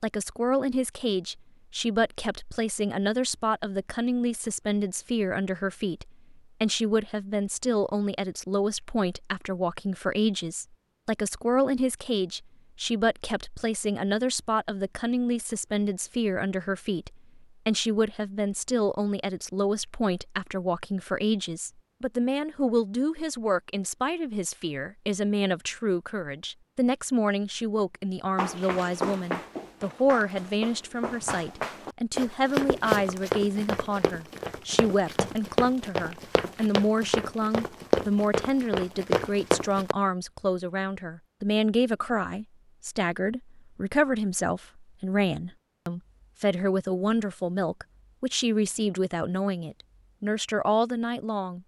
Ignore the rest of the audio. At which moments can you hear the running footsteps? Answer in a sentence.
The running footsteps can be heard from 28.4 to 40.0 s.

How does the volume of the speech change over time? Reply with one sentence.
The loudness of the speech stays about the same.